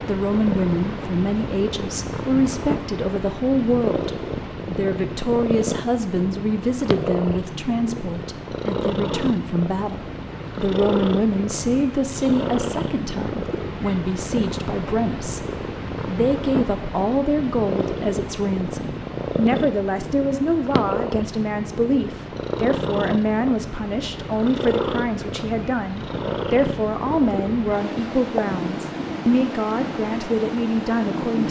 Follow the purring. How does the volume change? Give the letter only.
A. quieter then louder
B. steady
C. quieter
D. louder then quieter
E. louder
B.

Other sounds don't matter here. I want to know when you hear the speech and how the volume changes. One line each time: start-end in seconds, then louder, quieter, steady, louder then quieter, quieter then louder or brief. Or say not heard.
0.0-15.4 steady
16.1-31.4 steady.